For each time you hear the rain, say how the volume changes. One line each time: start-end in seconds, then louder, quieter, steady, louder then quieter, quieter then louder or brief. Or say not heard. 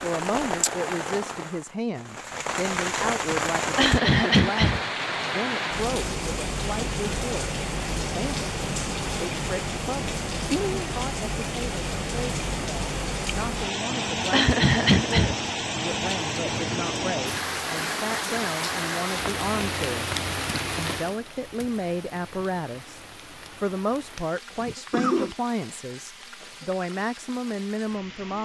0.0-28.3 quieter.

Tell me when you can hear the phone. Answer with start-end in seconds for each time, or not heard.
not heard.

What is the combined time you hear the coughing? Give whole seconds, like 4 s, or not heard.
3 s.